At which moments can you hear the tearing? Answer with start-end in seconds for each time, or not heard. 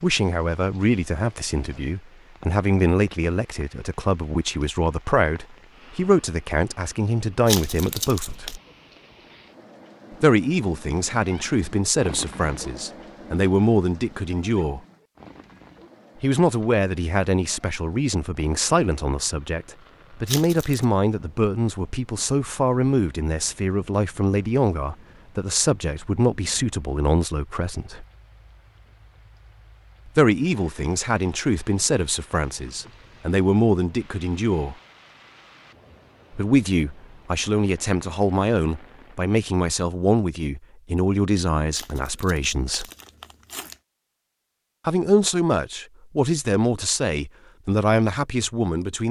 7.5-8.6, 20.2-20.9, 41.7-43.8.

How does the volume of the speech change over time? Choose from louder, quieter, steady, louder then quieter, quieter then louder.
steady.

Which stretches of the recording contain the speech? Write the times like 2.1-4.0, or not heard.
0.0-8.6, 10.2-14.8, 16.2-28.1, 30.1-34.8, 36.4-42.9, 44.9-49.0.